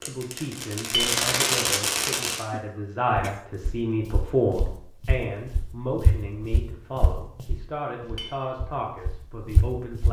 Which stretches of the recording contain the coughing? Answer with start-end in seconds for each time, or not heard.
2.5-3.5.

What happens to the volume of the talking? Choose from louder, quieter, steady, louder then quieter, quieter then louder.
louder then quieter.